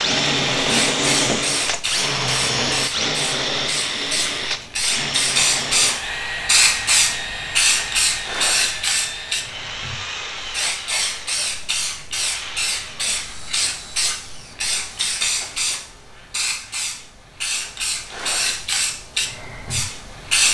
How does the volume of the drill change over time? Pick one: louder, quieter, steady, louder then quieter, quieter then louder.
quieter.